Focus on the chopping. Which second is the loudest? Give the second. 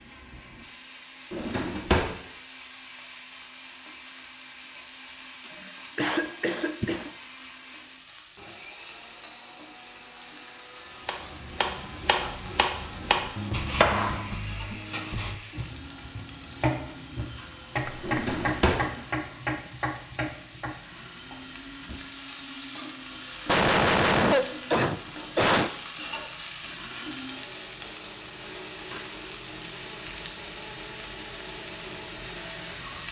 14 s.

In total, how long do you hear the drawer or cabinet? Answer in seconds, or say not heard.
2 s.